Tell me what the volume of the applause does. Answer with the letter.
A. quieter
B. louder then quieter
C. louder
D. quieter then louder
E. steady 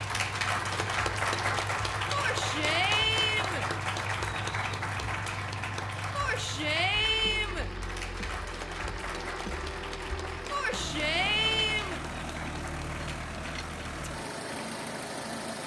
A.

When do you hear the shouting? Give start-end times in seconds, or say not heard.
2.1-3.6, 6.1-7.7, 10.5-12.0.